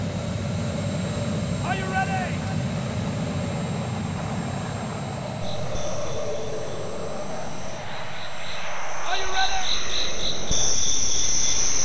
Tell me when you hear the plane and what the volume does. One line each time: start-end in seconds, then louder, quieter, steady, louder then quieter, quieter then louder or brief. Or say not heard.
0.0-11.8 quieter.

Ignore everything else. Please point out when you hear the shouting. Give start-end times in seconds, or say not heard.
1.6-2.6, 9.1-9.7.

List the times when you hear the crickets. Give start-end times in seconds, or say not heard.
5.4-11.8.